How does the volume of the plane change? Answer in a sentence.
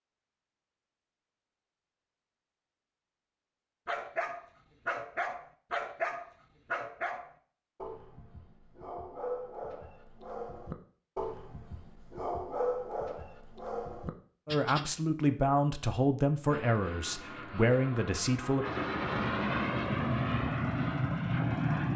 The loudness of the plane goes up.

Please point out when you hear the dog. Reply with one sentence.
You can hear the dog from 3.9 to 14.9 s.